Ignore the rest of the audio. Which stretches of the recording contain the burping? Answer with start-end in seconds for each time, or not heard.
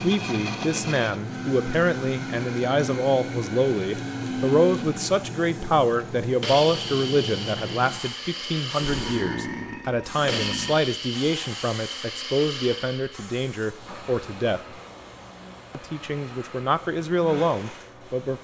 8.8-10.8.